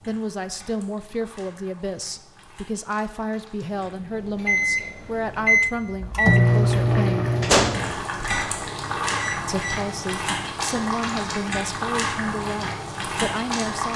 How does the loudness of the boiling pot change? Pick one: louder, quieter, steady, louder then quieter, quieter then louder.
louder.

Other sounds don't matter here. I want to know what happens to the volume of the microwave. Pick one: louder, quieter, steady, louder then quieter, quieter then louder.
louder then quieter.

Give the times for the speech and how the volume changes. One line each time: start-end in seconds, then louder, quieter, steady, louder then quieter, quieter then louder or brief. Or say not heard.
0.1-7.3 steady
9.4-13.9 steady.